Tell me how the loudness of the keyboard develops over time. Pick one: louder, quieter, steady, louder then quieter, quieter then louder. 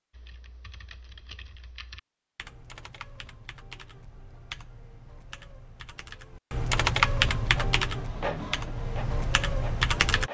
louder then quieter.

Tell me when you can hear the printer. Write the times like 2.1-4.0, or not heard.
7.4-10.3.